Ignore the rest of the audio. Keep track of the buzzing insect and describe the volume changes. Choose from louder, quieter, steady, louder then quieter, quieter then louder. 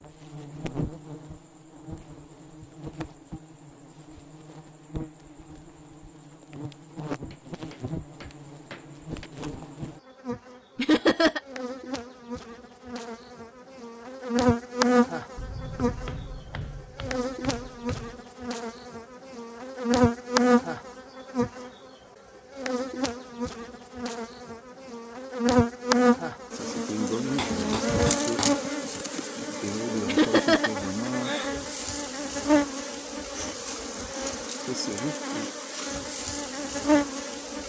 louder.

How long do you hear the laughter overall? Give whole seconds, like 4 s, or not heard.
2 s.